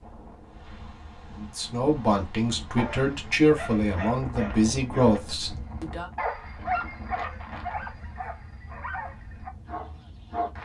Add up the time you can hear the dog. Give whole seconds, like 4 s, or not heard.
8 s.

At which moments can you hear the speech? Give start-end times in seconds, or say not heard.
1.4-6.0.